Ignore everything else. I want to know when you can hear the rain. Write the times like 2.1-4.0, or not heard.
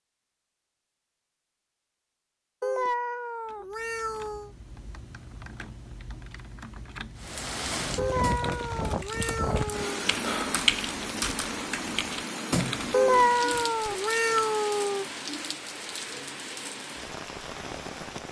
7.2-18.2.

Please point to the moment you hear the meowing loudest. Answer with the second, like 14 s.
13 s.